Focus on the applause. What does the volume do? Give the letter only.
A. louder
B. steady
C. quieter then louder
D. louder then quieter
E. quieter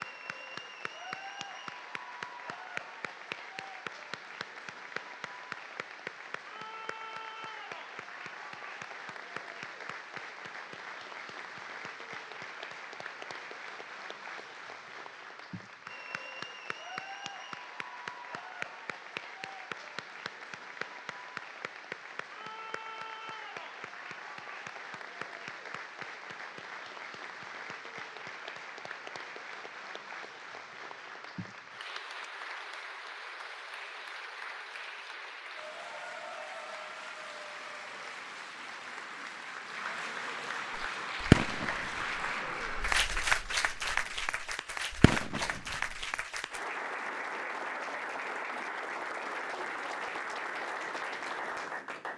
A.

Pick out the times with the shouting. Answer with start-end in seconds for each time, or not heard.
not heard.